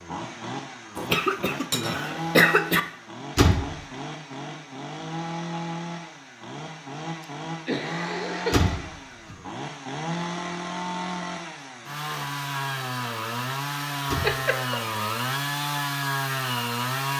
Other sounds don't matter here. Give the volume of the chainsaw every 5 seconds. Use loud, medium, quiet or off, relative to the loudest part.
medium, medium, loud, loud.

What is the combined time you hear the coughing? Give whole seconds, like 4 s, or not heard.
4 s.